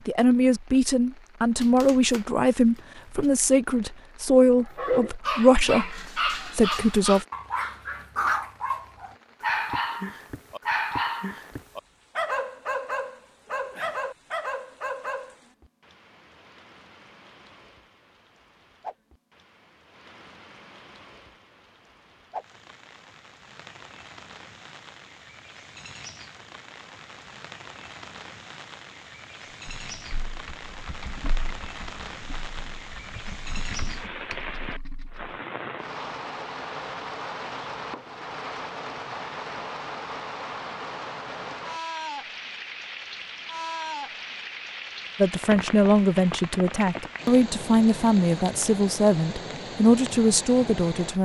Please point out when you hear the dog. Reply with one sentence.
The dog can be heard from 4.7 to 15.3 s.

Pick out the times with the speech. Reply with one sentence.
You can hear the speech from 0.1 to 7.2 s and from 45.1 to 51.2 s.